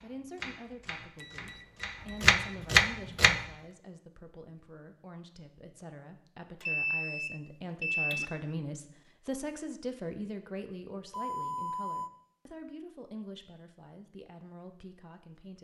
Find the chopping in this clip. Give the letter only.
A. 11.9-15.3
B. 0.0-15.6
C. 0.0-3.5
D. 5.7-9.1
C.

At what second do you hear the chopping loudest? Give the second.
3 s.